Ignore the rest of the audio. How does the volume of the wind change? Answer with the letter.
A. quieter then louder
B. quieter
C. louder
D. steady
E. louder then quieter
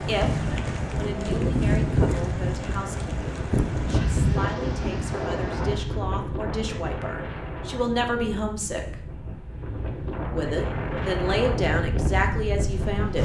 A.